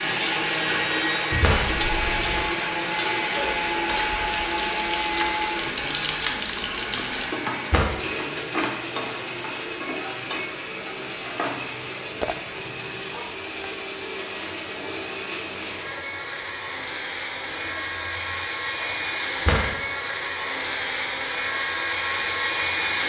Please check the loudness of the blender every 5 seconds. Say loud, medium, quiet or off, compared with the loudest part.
loud, medium, medium, medium, loud.